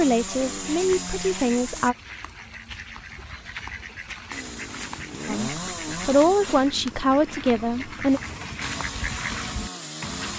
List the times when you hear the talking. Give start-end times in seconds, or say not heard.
0.0-1.9, 5.2-8.2.